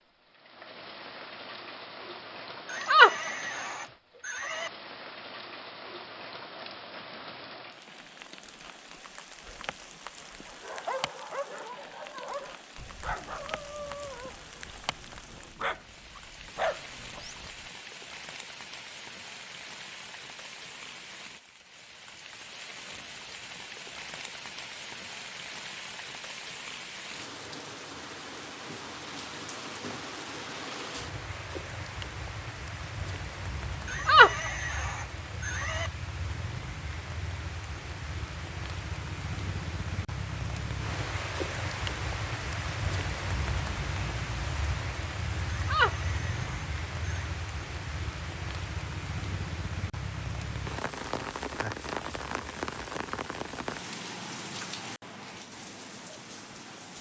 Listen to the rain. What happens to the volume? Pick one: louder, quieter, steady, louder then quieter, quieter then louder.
louder.